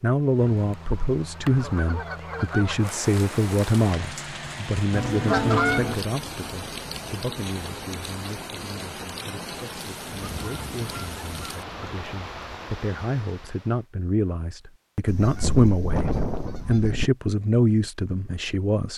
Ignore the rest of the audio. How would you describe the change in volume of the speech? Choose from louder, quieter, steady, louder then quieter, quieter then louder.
quieter then louder.